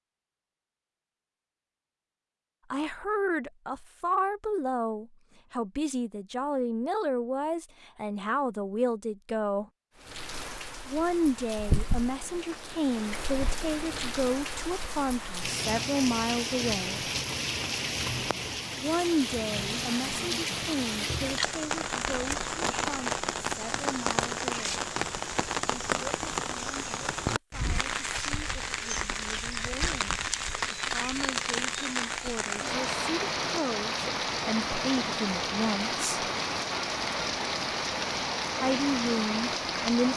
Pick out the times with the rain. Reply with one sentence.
You can hear the rain from 9.9 to 40.1 s.